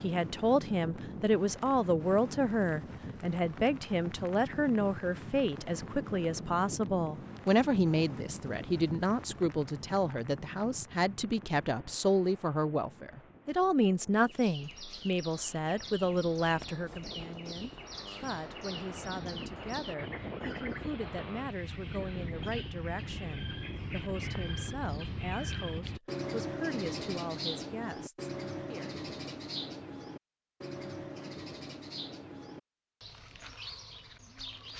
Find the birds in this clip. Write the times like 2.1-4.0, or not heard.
14.2-34.7.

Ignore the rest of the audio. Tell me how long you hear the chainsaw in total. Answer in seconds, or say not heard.
not heard.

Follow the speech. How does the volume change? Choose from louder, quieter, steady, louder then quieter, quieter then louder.
quieter.